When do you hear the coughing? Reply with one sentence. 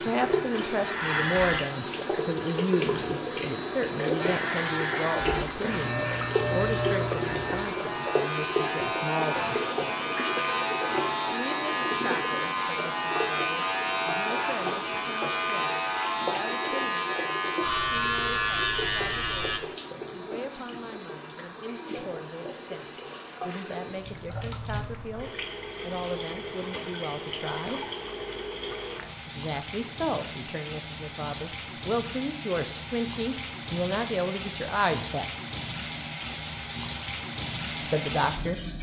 You can't hear the coughing here.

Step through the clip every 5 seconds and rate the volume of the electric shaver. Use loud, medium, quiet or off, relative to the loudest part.
loud, loud, loud, loud, off, off, off, off.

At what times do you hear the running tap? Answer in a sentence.
The running tap can be heard from 0.0 to 38.7 s.